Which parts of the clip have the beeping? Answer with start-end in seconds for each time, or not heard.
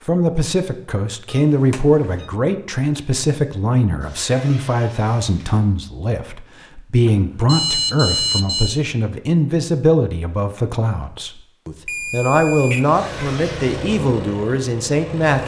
1.3-2.3, 7.0-8.8, 11.8-12.8.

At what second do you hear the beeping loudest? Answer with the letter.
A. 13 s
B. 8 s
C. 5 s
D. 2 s
B.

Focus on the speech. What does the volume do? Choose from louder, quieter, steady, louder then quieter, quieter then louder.
steady.